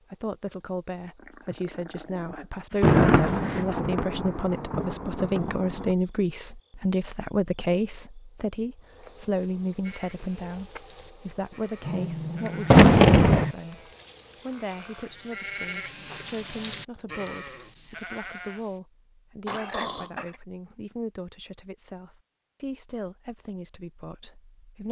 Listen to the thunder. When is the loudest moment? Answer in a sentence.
The loudest moment of the thunder is at 13 seconds.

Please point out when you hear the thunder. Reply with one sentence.
You can hear the thunder from 2.8 to 5.9 s and from 12.7 to 13.4 s.